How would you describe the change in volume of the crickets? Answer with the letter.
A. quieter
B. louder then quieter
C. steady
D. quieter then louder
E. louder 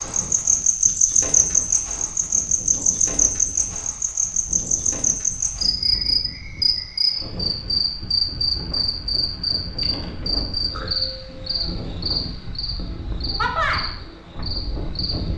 A.